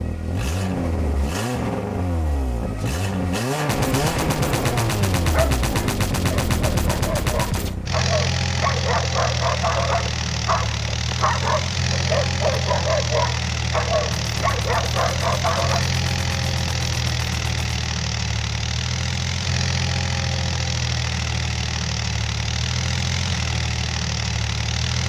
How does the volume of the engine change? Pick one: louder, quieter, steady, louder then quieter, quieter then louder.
steady.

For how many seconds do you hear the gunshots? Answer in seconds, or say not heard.
8 s.